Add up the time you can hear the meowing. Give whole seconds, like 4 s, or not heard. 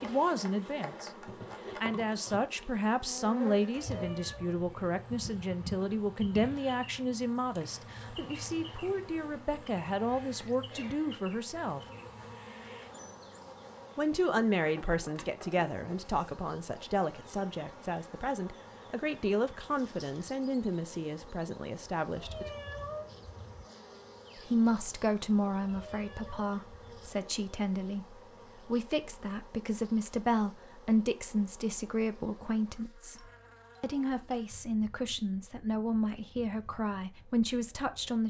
4 s.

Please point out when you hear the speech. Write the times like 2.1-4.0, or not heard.
0.0-11.8, 13.9-22.5, 24.4-38.2.